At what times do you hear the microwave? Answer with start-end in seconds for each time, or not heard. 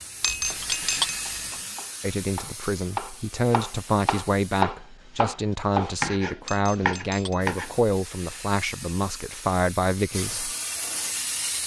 not heard.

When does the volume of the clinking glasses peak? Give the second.
1 s.